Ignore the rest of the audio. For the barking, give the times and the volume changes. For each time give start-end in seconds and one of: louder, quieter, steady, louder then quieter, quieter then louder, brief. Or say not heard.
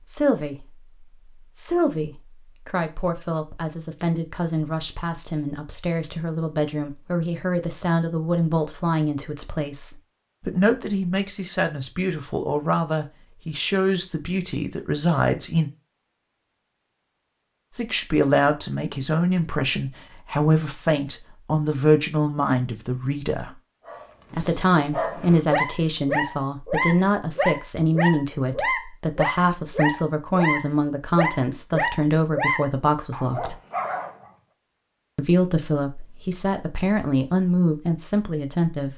23.9-34.3 steady.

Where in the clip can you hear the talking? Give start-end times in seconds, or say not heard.
0.1-15.7, 17.7-23.6, 24.3-33.5, 35.1-38.9.